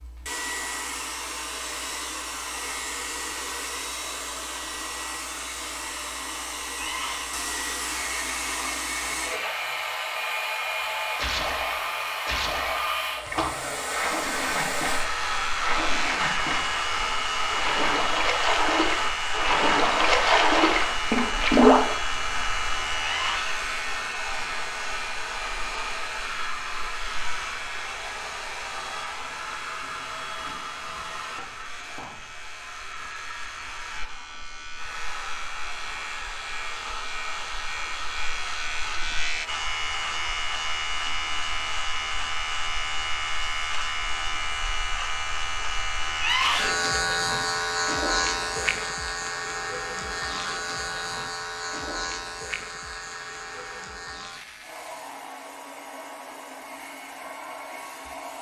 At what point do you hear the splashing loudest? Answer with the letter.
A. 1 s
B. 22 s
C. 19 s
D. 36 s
B.